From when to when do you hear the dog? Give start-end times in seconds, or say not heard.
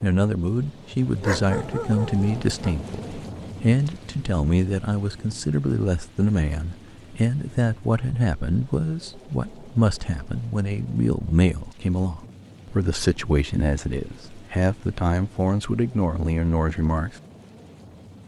1.2-2.8.